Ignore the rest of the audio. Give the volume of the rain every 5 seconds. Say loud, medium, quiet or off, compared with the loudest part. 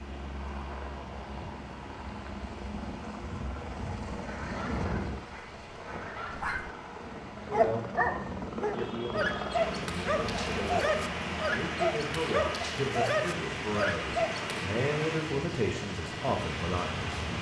quiet, medium, loud, loud.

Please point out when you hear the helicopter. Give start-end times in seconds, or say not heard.
0.0-17.3.